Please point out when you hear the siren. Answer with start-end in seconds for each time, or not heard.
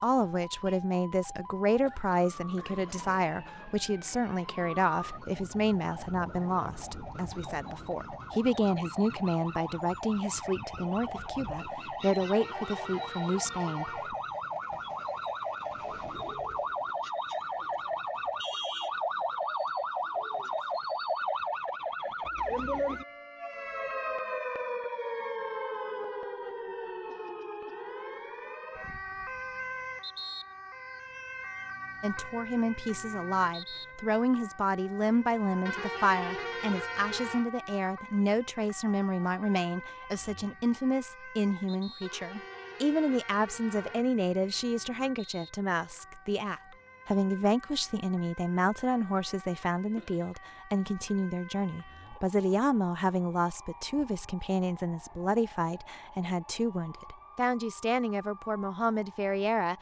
0.0-59.7.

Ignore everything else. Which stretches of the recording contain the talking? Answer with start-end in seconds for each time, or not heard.
0.0-14.2, 32.0-59.7.